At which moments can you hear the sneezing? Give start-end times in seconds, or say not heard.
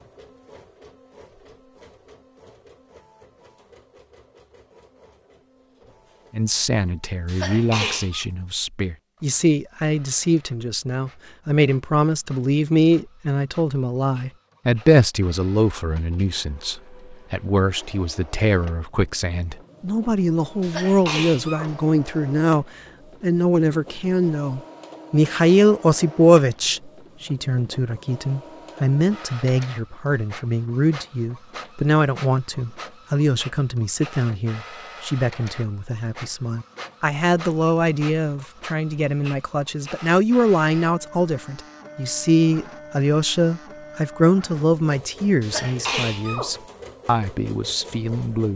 7.2-8.2, 20.6-21.7, 45.4-46.5.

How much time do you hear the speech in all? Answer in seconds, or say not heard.
42 s.